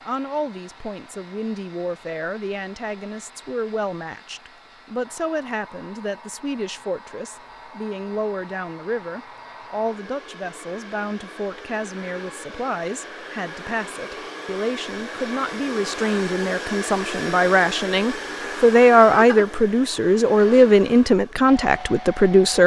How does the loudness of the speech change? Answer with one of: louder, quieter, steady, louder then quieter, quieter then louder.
louder.